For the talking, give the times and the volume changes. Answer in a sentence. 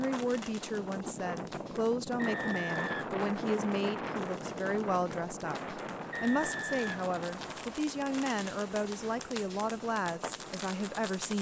The talking can be heard from 0.0 to 11.3 s, at a steady volume.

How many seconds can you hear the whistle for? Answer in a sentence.
You can hear the whistle for 3 seconds altogether.